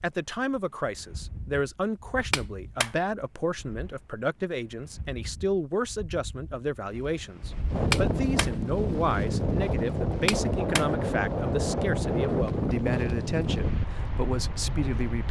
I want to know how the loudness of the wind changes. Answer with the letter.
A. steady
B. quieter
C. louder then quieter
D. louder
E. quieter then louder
D.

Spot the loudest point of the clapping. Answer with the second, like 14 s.
8 s.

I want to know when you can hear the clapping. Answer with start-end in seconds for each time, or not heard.
2.3-2.9, 7.9-8.5, 10.2-10.8.